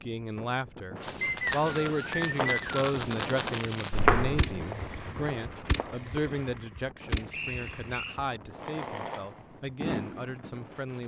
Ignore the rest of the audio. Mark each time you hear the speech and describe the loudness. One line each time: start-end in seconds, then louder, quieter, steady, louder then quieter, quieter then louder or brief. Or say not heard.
0.0-11.0 quieter.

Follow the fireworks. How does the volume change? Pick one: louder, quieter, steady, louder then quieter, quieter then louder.
quieter then louder.